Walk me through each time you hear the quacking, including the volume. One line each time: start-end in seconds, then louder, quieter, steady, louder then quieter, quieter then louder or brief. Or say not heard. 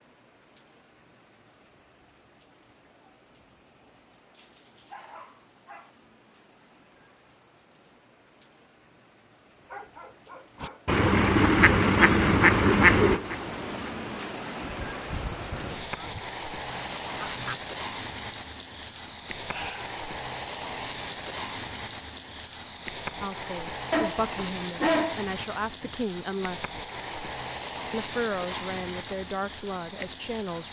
10.6-17.6 quieter.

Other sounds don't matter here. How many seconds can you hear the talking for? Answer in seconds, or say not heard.
6 s.